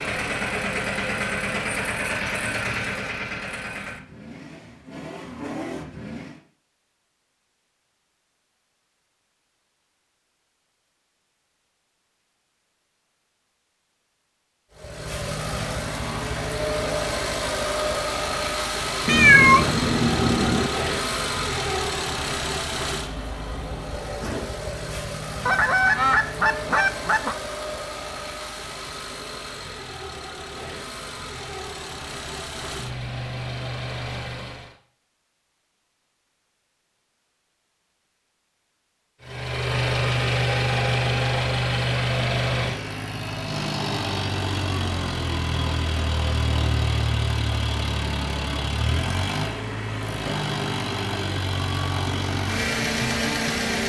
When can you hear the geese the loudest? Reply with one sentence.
The volume of the geese peaks at 26 seconds.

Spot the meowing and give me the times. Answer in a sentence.
The meowing can be heard from 19.1 to 20.7 s.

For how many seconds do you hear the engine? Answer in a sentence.
The engine can be heard for 41 seconds in total.